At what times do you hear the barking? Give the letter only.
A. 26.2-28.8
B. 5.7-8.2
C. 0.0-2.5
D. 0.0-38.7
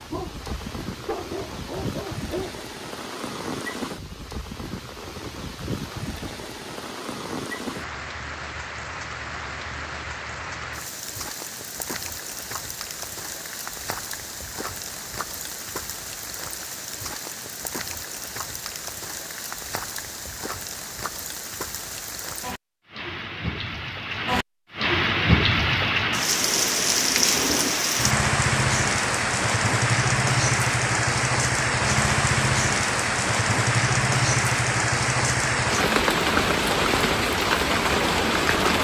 C.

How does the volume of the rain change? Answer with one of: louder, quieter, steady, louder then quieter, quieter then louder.
louder.